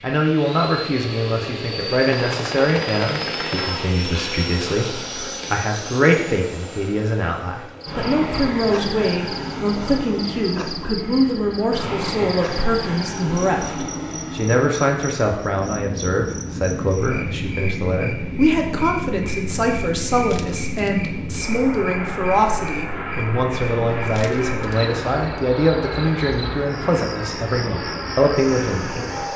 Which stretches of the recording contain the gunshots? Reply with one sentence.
You can hear the gunshots from 2.1 to 3.9 s.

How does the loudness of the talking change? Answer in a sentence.
The loudness of the talking stays about the same.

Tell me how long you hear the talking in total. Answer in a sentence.
The talking can be heard for 29 seconds in total.